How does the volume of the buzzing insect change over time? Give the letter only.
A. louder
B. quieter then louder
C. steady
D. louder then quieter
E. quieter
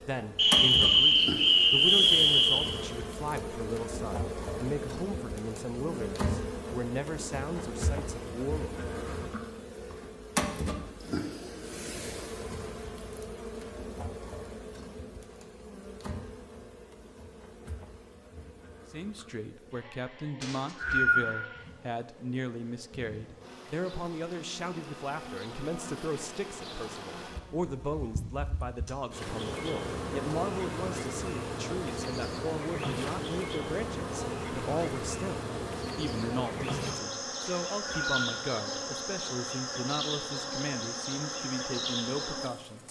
B.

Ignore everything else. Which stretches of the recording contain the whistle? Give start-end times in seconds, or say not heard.
0.3-2.7, 20.4-21.4, 37.5-38.3.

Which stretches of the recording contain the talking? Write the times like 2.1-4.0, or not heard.
0.1-8.8, 18.9-42.8.